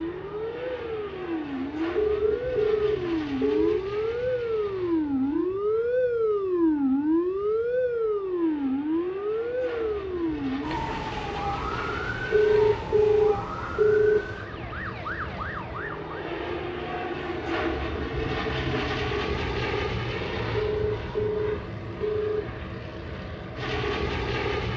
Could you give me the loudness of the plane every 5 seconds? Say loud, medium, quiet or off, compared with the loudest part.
medium, quiet, medium, loud, loud.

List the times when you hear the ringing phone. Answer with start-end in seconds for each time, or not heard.
1.9-3.8, 12.3-14.2, 20.6-22.4.